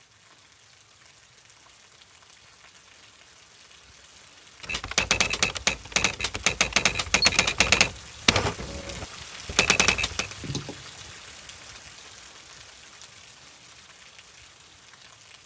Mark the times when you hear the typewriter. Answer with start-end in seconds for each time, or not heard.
4.6-10.3.